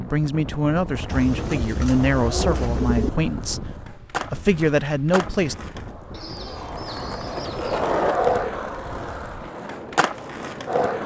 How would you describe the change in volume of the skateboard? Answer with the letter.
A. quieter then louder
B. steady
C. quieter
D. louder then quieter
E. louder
D.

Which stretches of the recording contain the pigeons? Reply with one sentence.
You can hear the pigeons from 1.1 to 3.1 s and from 6.1 to 7.8 s.